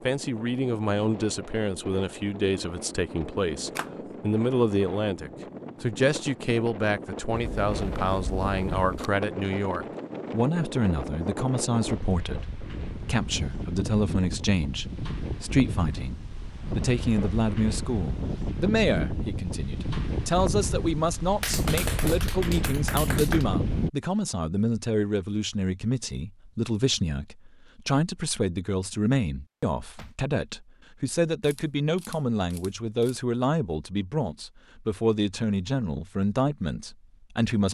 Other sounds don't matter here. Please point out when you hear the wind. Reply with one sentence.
You can hear the wind from 0.0 to 23.9 s.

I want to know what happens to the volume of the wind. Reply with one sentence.
The volume of the wind goes up.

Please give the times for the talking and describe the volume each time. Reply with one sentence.
You can hear the talking from 0.0 to 37.7 s, at a steady volume.